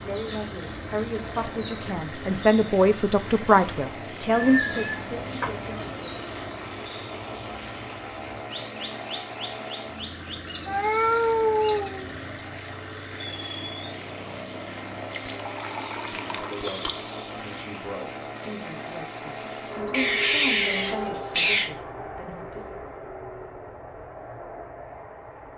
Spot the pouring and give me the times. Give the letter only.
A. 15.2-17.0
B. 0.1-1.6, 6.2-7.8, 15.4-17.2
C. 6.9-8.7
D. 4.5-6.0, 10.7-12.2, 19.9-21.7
A.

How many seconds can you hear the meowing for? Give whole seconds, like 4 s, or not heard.
5 s.